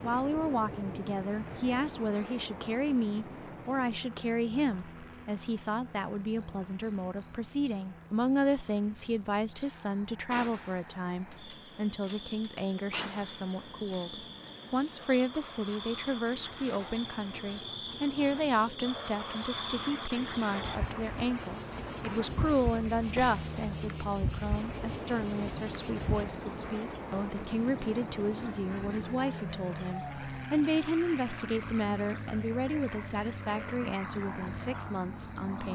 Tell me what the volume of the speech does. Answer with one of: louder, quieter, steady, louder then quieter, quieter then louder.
steady.